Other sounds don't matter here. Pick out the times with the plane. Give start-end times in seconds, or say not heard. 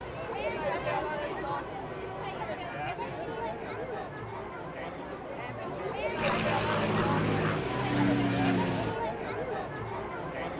6.2-9.0.